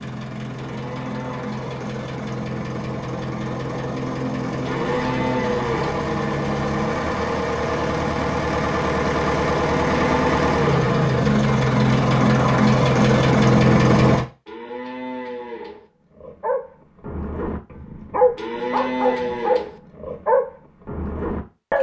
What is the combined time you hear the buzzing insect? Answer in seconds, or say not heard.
not heard.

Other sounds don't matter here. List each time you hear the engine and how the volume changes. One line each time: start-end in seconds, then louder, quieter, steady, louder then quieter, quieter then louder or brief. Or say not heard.
0.0-14.2 louder.